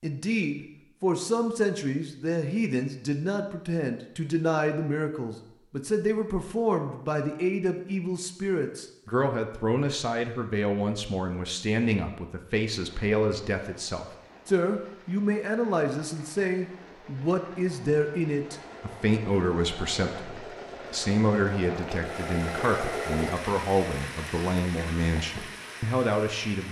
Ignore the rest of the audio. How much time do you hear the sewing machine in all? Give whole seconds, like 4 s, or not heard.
5 s.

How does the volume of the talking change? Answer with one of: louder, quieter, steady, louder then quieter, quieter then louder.
steady.